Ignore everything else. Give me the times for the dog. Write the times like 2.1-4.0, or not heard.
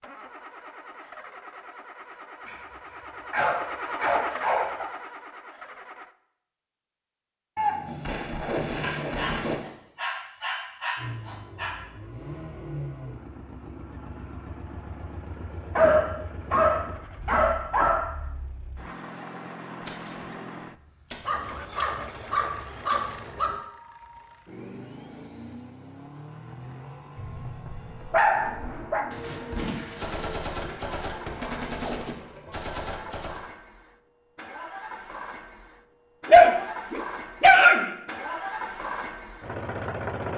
2.5-4.8, 8.8-11.8, 15.8-18.1, 21.2-23.6, 27.1-29.1, 36.2-37.9.